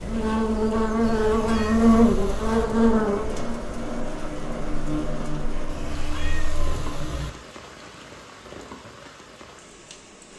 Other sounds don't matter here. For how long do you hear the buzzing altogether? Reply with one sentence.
The buzzing can be heard for 7 seconds in total.